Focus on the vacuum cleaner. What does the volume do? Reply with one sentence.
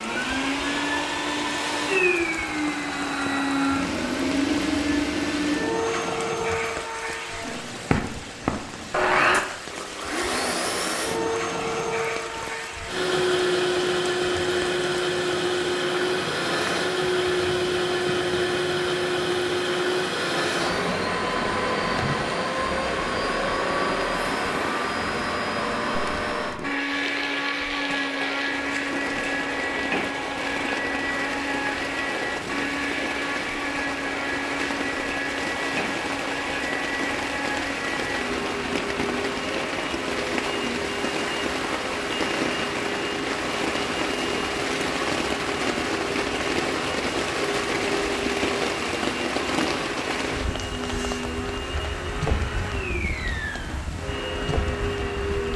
The loudness of the vacuum cleaner goes down.